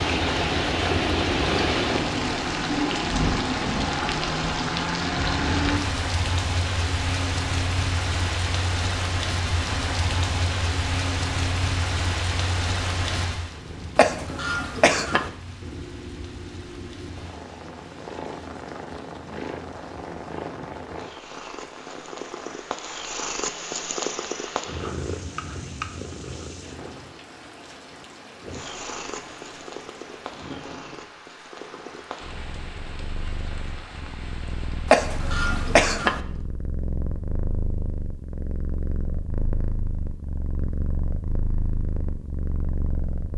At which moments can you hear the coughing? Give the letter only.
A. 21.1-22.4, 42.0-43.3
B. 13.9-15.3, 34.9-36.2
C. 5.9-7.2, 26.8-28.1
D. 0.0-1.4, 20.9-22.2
B.